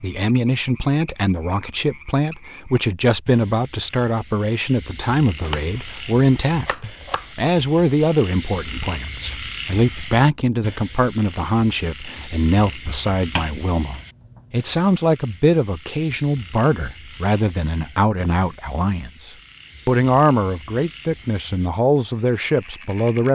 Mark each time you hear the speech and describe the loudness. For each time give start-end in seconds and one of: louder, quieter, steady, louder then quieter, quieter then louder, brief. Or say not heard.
0.0-23.3 steady.